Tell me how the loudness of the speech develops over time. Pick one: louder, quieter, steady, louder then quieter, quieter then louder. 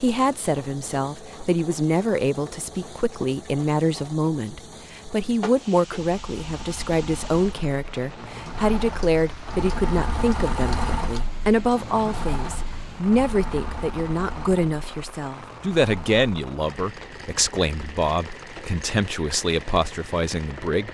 steady.